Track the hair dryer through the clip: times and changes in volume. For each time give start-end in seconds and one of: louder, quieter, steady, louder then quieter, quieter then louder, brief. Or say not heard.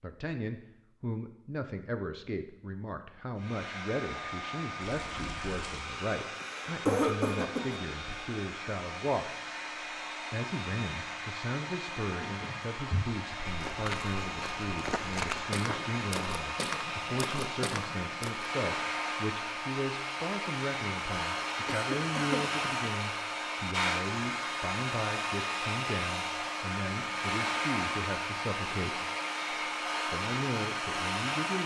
3.4-31.6 louder.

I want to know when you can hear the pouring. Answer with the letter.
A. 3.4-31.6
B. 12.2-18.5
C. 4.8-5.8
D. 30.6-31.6
C.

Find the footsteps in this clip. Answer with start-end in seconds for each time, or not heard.
12.2-18.5.